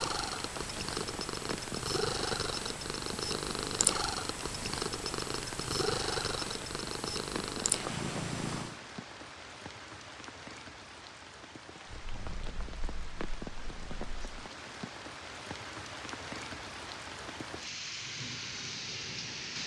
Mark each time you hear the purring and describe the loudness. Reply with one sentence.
The purring can be heard from 0.0 to 8.8 s, at a steady volume; and briefly from 11.9 to 14.3 s.